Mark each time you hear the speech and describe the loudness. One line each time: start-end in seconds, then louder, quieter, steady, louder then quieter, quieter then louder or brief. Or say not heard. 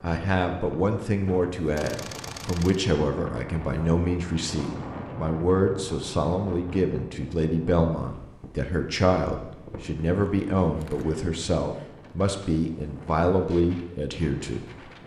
0.0-14.7 steady.